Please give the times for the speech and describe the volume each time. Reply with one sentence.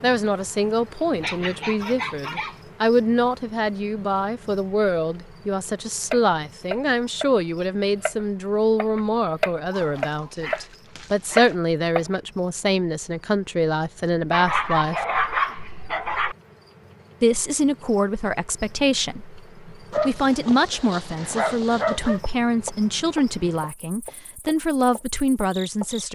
You can hear the speech from 0.0 to 15.1 s, at a steady volume; and from 17.2 to 26.1 s, at a steady volume.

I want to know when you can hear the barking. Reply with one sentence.
The barking can be heard from 1.2 to 2.5 s, from 9.7 to 11.6 s, from 14.3 to 16.4 s and from 19.9 to 22.2 s.